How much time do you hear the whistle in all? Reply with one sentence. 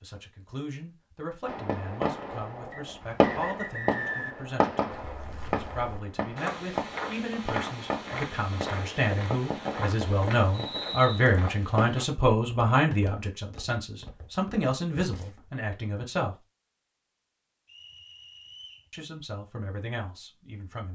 You can hear the whistle for 4 seconds altogether.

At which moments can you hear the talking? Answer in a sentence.
You can hear the talking from 0.0 to 16.4 s and from 18.9 to 20.9 s.